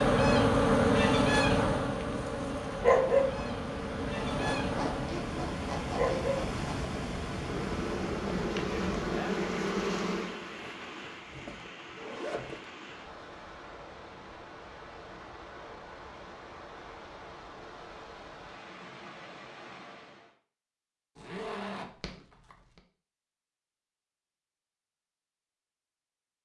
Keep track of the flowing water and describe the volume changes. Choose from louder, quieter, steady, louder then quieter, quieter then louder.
quieter.